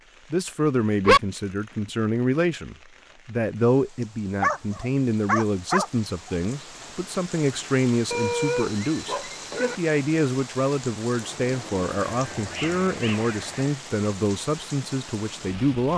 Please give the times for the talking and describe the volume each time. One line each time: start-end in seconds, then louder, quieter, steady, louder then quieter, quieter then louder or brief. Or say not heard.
0.3-15.9 steady.